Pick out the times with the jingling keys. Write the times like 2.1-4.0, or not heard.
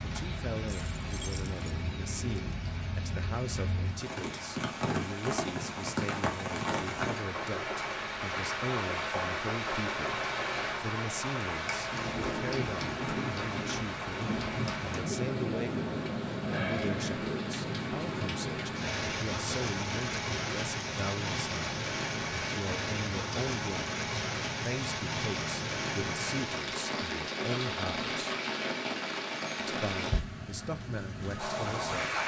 0.7-1.8.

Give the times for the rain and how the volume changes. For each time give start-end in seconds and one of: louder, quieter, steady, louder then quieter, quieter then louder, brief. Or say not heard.
0.0-32.2 steady.